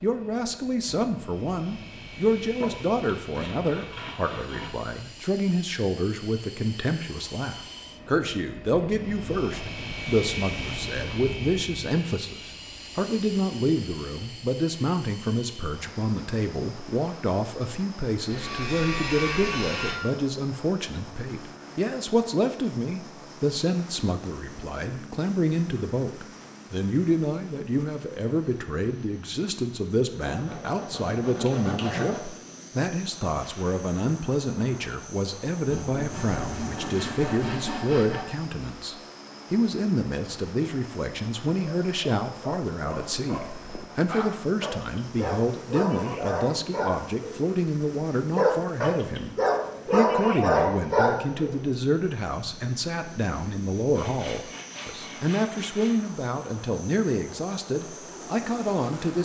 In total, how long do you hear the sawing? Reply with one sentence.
The sawing can be heard for 11 seconds in total.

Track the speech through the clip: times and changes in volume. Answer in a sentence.
The speech can be heard from 0.0 to 59.1 s, at a steady volume.